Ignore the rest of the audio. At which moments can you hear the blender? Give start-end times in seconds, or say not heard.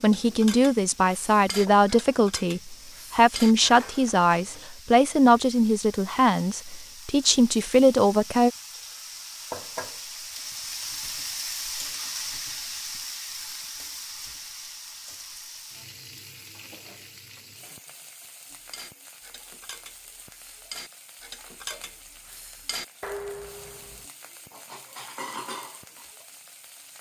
not heard.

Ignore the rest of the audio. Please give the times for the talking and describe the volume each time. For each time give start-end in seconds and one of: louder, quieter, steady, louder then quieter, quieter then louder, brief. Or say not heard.
0.0-8.5 steady.